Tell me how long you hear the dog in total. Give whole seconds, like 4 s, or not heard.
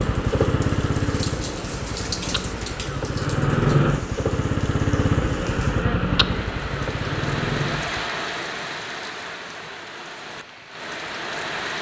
not heard.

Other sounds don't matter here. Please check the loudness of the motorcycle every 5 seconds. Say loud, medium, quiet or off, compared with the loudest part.
loud, loud, off.